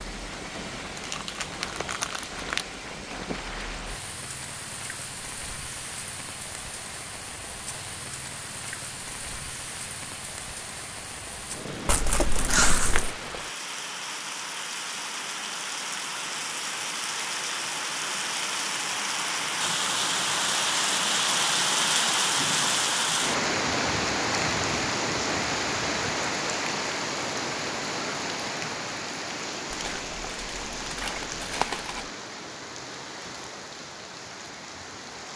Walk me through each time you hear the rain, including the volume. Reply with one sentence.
The rain can be heard from 0.0 to 35.3 s, getting louder then quieter.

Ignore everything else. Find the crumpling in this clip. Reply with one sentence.
You can hear the crumpling from 0.9 to 2.6 s, from 11.8 to 13.2 s and from 29.7 to 32.1 s.